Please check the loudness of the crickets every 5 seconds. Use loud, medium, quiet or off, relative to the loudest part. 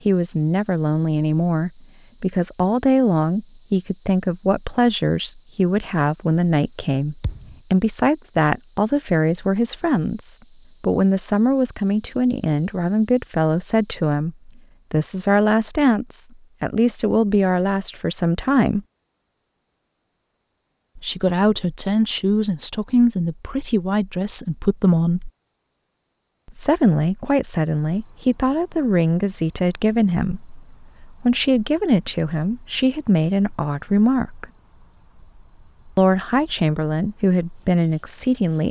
loud, loud, loud, quiet, quiet, quiet, quiet, quiet.